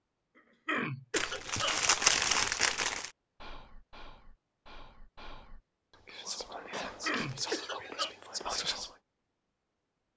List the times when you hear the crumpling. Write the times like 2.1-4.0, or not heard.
1.1-3.1, 6.7-7.5.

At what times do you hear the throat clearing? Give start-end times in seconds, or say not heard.
0.3-1.8, 7.0-8.2.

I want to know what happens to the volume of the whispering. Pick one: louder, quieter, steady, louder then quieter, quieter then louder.
louder.